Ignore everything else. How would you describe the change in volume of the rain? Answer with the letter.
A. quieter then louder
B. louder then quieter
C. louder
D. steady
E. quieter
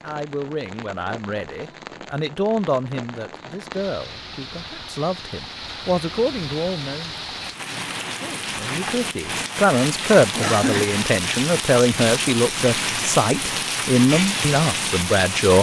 C.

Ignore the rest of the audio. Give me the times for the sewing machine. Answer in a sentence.
You can't hear the sewing machine here.